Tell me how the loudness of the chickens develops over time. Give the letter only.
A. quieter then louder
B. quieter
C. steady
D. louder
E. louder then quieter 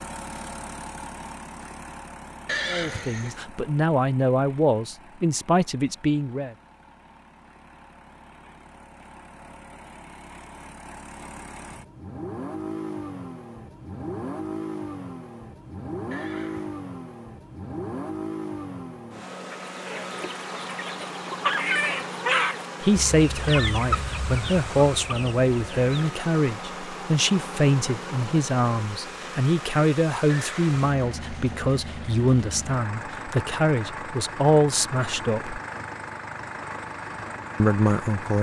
E.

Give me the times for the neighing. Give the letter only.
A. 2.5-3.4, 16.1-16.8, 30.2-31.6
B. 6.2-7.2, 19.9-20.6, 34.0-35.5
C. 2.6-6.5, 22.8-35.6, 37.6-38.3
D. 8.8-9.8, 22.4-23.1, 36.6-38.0
A.